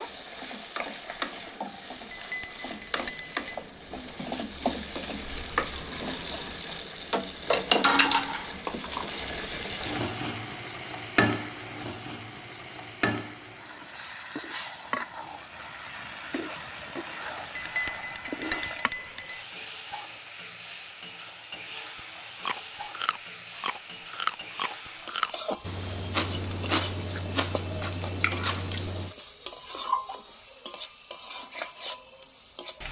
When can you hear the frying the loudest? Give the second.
8 s.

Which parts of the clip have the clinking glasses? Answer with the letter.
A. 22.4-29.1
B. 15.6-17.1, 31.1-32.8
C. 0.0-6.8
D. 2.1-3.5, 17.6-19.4
D.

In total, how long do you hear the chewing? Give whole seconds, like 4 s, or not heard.
7 s.